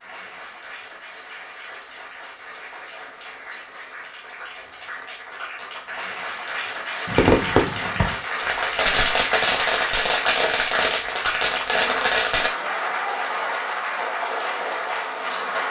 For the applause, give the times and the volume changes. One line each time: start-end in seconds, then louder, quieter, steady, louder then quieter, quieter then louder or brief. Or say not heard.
0.0-15.6 louder.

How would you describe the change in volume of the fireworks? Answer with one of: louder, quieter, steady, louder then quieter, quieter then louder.
steady.